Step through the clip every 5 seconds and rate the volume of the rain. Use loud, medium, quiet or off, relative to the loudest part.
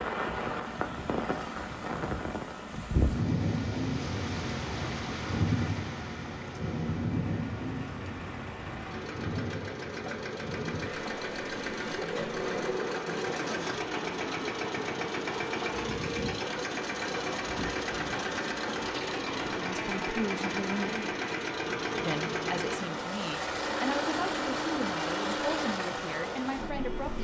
loud, loud, medium, medium, medium, medium.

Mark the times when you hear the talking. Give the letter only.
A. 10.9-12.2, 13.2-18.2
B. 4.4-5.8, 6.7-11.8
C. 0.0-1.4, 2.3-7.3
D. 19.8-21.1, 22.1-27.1
D.